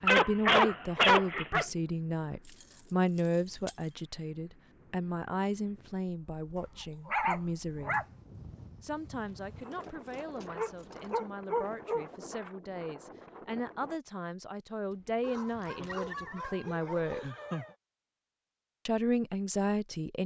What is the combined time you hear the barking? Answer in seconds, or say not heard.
7 s.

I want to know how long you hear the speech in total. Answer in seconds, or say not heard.
18 s.